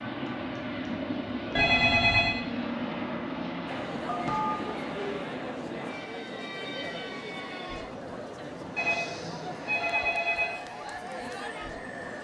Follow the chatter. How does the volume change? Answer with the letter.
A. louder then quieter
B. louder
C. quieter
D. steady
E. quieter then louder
D.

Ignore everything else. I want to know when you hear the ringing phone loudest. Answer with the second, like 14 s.
2 s.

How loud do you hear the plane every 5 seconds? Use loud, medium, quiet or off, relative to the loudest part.
loud, medium, medium.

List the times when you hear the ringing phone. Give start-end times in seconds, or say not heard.
1.6-2.4, 4.0-5.2, 8.8-10.6.